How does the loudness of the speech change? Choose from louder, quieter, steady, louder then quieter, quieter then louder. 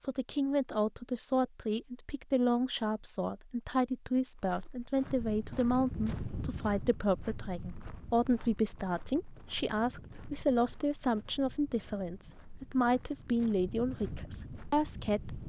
steady.